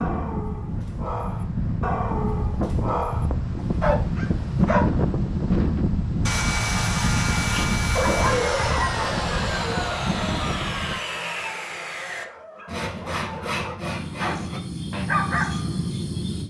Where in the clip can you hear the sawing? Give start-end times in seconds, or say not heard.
6.2-15.1.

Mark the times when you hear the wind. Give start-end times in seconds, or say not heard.
0.0-11.0.